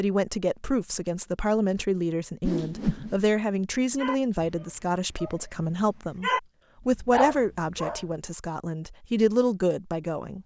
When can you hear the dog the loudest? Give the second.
6 s.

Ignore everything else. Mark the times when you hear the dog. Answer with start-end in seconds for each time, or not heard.
4.0-6.4, 7.2-8.2.